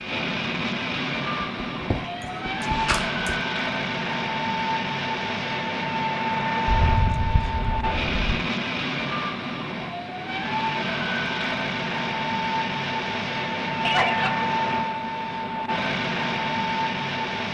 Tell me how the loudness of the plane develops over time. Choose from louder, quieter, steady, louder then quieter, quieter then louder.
steady.